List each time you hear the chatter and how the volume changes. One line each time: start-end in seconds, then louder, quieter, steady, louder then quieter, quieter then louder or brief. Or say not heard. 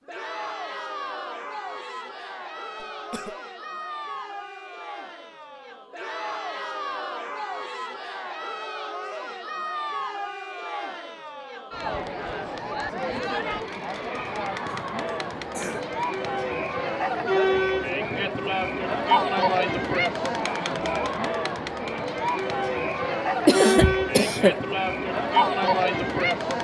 0.1-26.5 louder.